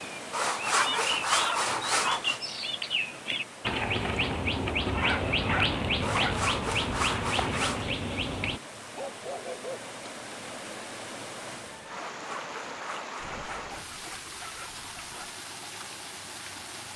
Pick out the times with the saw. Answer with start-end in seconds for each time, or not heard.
0.3-2.4, 6.0-7.8, 11.9-13.7.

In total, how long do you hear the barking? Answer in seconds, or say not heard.
7 s.